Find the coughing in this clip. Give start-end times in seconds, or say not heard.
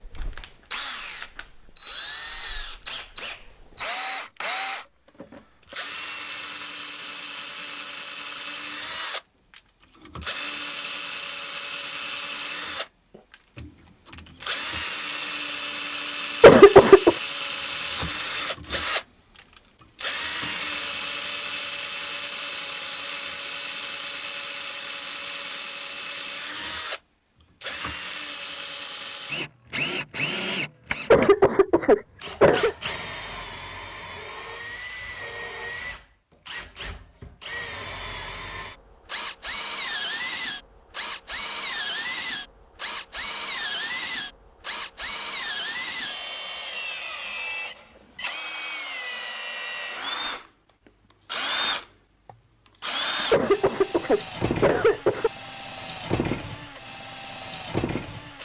16.4-17.1, 31.1-32.8, 53.3-55.3.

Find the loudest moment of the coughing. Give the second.
17 s.